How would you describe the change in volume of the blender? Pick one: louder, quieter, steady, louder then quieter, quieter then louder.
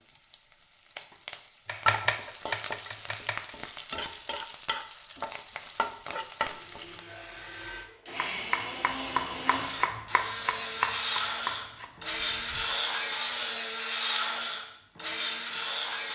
louder.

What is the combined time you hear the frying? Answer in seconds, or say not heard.
7 s.